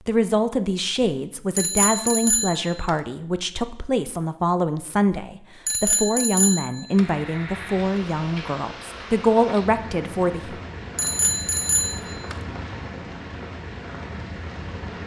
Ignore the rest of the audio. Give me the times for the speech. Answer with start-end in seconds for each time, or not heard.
0.1-10.6.